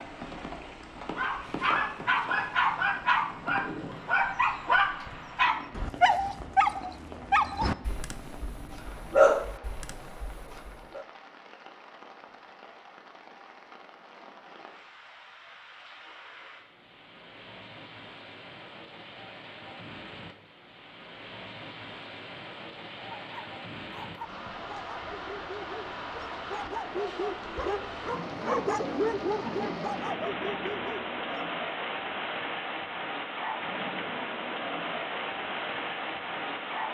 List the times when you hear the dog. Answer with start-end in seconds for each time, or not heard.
1.1-11.1, 23.1-31.5.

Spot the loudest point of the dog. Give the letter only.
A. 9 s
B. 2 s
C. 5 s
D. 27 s
A.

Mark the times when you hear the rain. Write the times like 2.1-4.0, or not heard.
0.0-36.8.